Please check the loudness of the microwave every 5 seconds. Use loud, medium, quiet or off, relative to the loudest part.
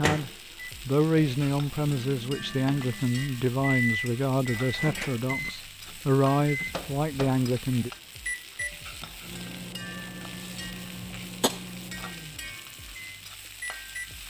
loud, loud, medium.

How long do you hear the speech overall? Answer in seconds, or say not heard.
8 s.